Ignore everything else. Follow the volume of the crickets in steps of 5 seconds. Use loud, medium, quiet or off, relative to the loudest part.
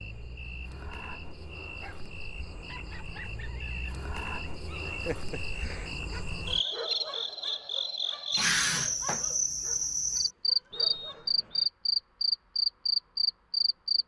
quiet, medium, loud.